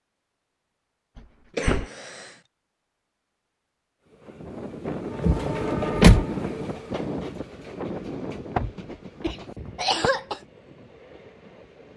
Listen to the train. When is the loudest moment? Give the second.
6 s.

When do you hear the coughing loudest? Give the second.
10 s.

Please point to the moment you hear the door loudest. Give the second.
6 s.